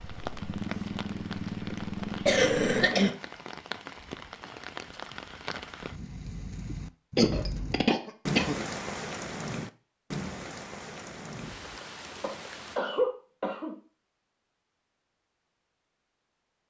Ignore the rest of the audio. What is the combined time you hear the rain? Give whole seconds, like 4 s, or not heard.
13 s.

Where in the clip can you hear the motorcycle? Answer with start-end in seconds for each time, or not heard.
0.0-2.9.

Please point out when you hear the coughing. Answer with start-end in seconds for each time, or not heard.
2.2-3.1, 7.2-8.7, 12.2-13.8.